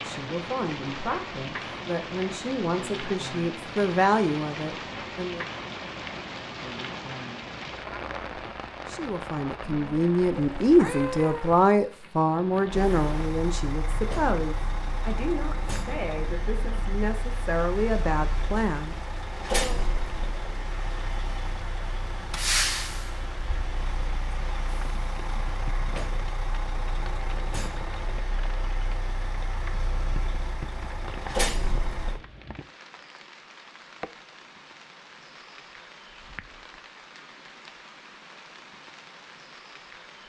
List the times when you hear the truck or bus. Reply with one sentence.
The truck or bus can be heard from 12.7 to 32.2 s.